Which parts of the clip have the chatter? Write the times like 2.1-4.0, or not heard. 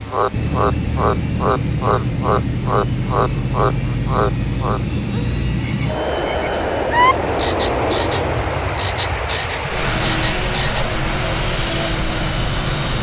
not heard.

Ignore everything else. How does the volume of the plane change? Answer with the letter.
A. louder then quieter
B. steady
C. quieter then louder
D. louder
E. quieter
B.